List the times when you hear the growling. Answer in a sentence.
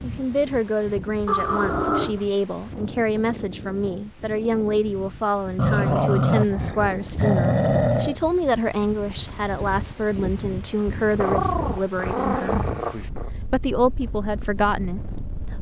You can hear the growling from 1.2 to 2.2 s, from 5.5 to 8.2 s and from 11.2 to 13.3 s.